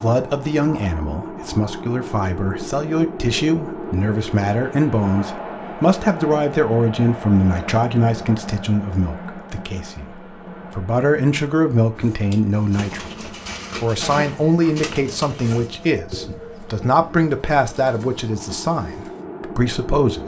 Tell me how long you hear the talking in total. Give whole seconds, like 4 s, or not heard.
20 s.